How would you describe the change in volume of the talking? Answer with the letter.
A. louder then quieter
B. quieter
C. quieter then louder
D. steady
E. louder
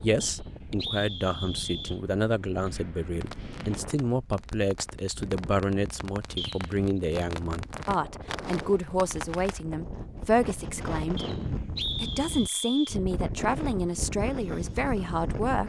D.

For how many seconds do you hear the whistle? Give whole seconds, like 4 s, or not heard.
4 s.